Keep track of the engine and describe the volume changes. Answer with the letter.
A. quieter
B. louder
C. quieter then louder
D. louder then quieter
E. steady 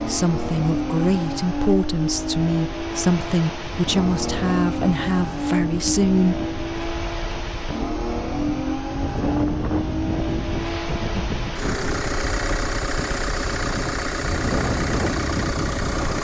E.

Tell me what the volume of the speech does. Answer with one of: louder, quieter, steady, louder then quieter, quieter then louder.
steady.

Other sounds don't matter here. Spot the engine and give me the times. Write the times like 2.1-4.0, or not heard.
0.0-16.1.